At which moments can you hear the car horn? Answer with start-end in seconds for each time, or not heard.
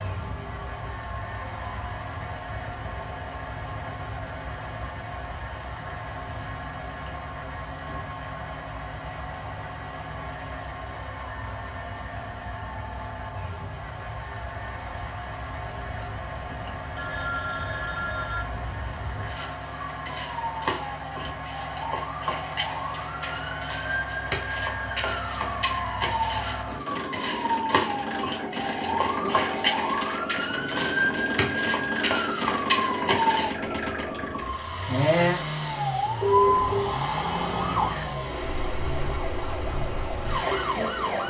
not heard.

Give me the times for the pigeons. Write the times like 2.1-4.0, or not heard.
not heard.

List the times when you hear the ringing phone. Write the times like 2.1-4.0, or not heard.
16.9-18.4, 36.2-36.9.